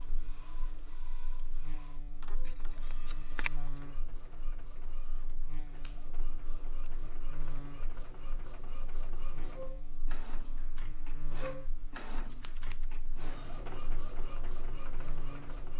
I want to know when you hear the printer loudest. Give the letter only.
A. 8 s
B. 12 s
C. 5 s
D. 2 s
B.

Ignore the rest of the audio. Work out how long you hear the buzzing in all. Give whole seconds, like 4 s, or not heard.
16 s.